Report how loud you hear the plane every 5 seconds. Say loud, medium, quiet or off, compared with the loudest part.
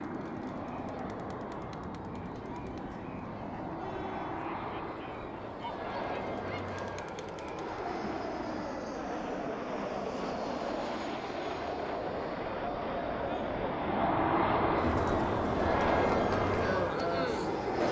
medium, medium, loud, loud.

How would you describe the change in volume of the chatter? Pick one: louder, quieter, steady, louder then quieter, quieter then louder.
louder.